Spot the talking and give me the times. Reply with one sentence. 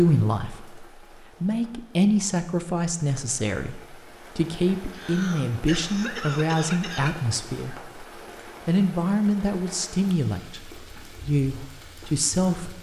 The talking can be heard from 0.0 to 8.0 s and from 8.7 to 12.7 s.